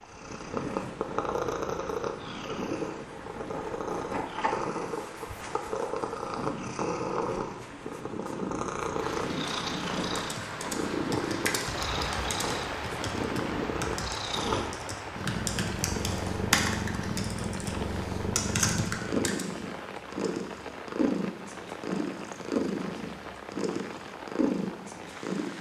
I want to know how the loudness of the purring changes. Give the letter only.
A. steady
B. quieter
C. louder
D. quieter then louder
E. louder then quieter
A.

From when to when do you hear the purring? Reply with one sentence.
The purring can be heard from 0.0 to 25.5 s.